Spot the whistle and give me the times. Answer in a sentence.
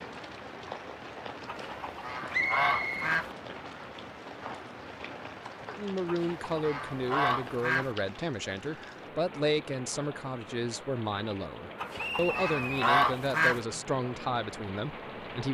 You can hear the whistle from 2.3 to 3.1 s and from 11.9 to 12.9 s.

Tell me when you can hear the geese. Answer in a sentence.
The geese can be heard from 1.4 to 3.4 s, from 6.0 to 8.0 s and from 11.8 to 13.6 s.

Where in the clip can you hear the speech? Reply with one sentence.
You can hear the speech from 5.7 to 15.5 s.